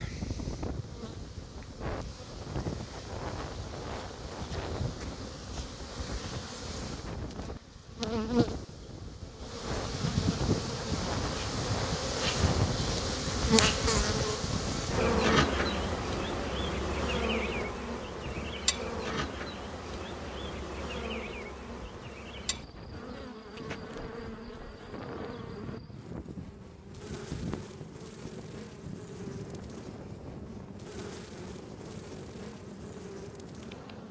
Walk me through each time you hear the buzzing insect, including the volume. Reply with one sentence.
You can hear the buzzing insect from 0.0 to 34.0 s, getting louder then quieter.